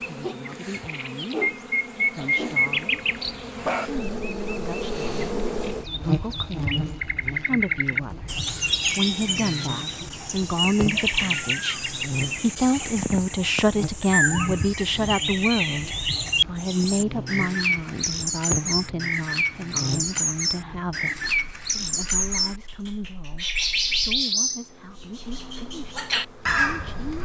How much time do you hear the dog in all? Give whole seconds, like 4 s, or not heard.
2 s.